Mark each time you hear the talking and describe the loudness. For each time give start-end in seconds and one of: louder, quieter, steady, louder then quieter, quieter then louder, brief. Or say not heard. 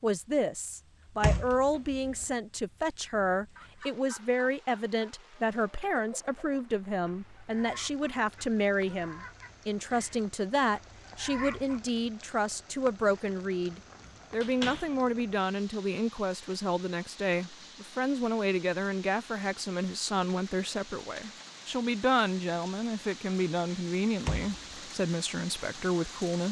0.0-26.4 steady.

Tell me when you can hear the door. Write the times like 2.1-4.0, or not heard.
1.2-2.2, 14.0-14.9, 24.2-24.8.